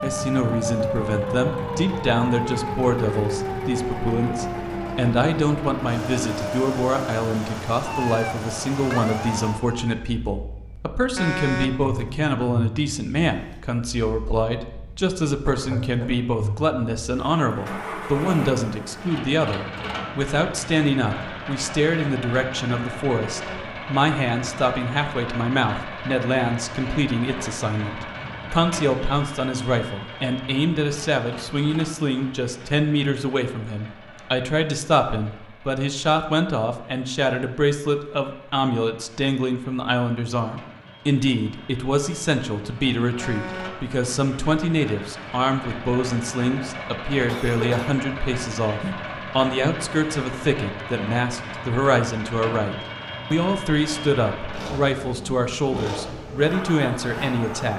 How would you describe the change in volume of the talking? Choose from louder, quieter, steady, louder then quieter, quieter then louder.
steady.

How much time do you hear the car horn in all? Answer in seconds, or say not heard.
2 s.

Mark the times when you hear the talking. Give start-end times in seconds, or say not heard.
0.0-57.7.